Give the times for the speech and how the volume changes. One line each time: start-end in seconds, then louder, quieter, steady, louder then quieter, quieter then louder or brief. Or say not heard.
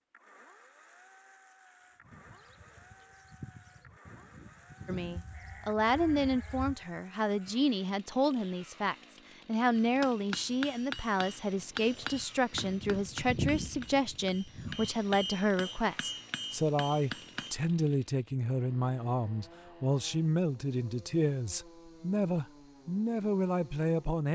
4.8-24.3 steady.